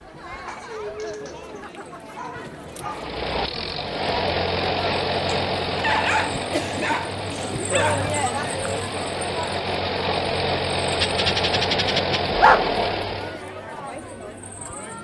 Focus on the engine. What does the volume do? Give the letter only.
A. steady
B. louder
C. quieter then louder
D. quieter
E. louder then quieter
C.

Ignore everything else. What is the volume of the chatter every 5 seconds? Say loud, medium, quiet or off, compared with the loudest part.
medium, loud, medium.